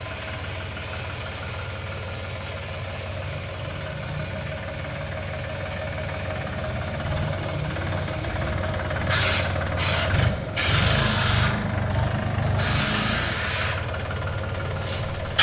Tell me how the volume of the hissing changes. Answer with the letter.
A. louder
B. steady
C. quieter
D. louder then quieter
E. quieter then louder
A.